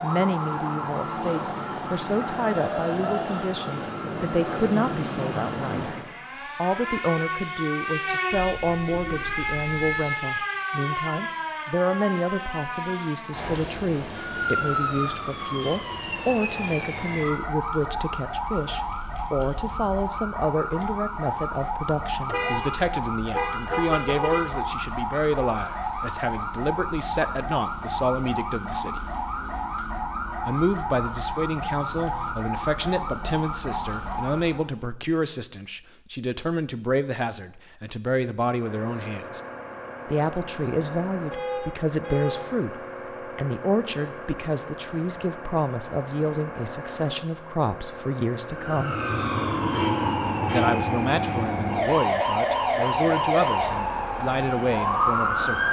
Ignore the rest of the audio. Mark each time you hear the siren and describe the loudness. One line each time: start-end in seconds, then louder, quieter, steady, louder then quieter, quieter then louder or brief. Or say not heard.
0.0-34.6 steady
48.5-55.6 steady.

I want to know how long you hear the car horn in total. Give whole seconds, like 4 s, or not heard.
5 s.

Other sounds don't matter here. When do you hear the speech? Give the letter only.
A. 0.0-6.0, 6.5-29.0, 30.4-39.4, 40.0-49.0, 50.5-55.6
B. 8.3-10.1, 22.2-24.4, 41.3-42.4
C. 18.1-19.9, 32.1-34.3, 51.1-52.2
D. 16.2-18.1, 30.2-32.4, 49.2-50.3
A.